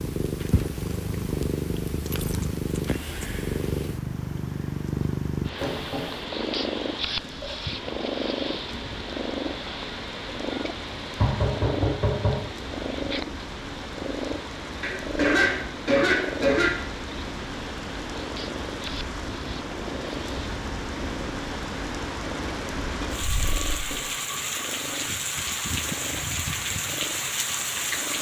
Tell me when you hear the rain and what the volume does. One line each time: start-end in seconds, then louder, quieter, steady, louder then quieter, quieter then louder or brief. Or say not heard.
0.2-28.1 louder.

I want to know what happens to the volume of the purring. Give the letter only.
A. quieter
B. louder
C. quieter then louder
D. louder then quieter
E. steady
A.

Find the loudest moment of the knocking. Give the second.
12 s.